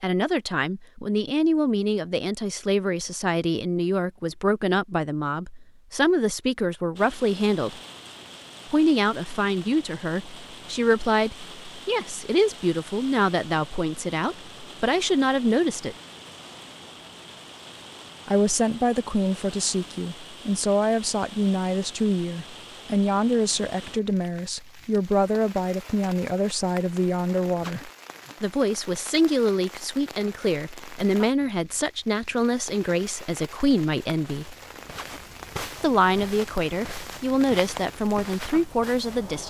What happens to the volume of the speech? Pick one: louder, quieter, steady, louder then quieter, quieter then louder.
steady.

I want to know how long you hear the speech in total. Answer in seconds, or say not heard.
35 s.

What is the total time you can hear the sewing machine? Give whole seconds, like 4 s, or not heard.
not heard.